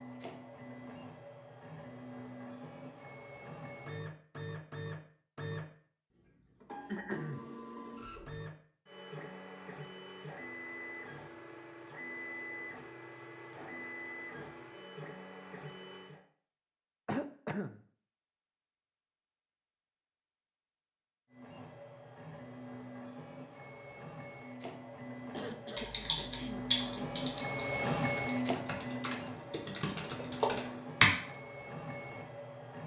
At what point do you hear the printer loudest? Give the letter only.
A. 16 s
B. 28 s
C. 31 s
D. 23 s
B.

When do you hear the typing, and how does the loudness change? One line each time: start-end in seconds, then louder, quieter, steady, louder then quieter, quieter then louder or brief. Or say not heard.
25.8-31.1 quieter then louder.